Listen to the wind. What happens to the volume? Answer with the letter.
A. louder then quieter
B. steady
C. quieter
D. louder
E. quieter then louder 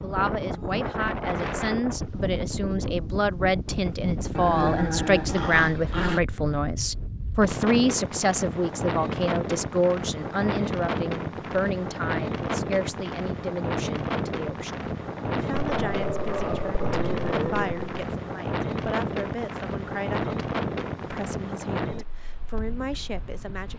B.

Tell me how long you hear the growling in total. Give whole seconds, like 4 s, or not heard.
4 s.